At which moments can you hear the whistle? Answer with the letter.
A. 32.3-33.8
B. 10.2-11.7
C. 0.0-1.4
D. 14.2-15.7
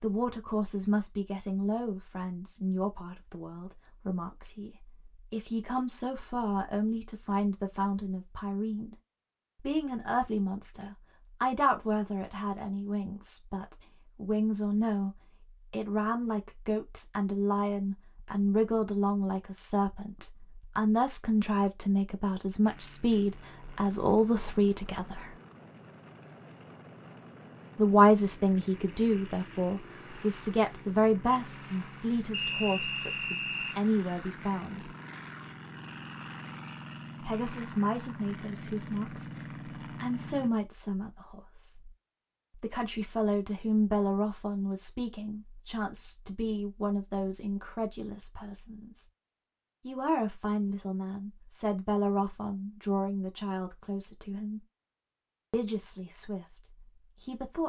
A.